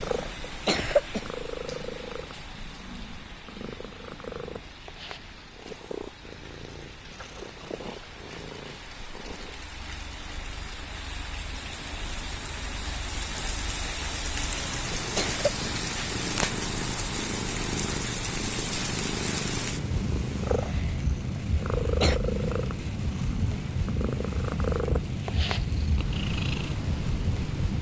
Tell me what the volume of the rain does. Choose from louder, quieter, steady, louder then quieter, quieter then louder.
louder.